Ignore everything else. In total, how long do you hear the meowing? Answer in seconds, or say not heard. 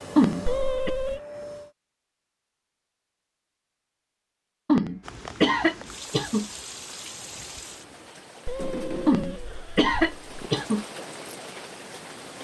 3 s.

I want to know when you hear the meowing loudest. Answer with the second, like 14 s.
1 s.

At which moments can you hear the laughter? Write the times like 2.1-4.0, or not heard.
0.1-0.9, 4.7-6.5, 9.1-10.8.